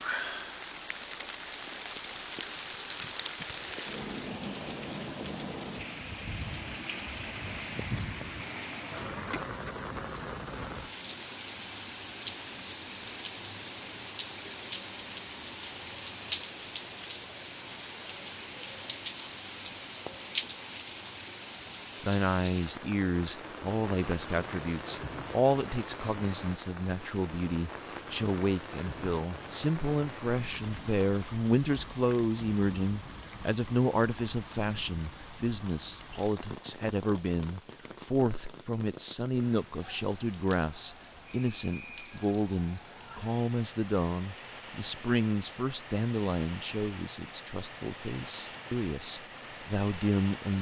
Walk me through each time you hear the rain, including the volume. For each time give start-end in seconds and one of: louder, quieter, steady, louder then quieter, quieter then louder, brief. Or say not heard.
0.0-50.5 quieter.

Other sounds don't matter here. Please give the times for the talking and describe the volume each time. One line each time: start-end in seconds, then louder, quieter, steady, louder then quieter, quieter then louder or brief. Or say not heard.
22.0-50.5 steady.